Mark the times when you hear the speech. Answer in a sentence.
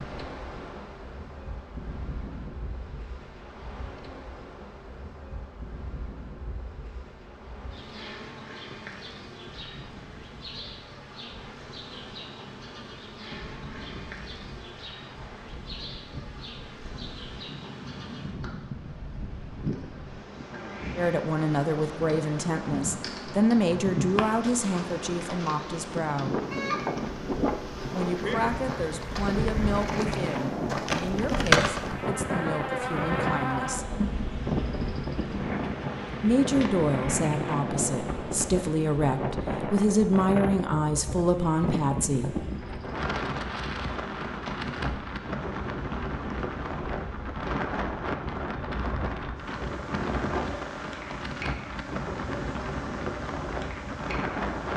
The speech can be heard from 20.9 to 26.4 s, from 27.9 to 34.0 s and from 36.2 to 42.5 s.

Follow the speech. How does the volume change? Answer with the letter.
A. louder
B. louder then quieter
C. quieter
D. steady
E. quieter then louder
E.